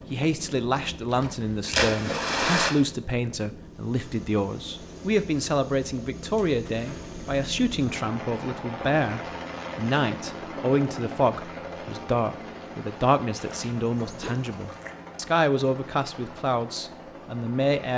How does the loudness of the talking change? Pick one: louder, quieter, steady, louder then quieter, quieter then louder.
steady.